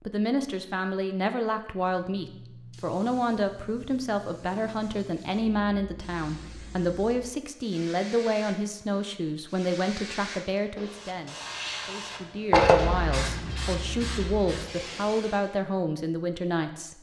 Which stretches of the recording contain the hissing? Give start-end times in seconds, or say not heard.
1.9-15.6.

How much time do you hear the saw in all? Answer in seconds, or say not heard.
not heard.